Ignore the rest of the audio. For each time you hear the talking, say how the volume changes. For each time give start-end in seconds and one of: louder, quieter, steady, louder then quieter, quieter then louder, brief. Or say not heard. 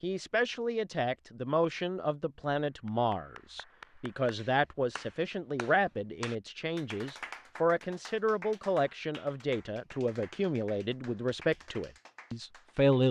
0.0-13.0 steady.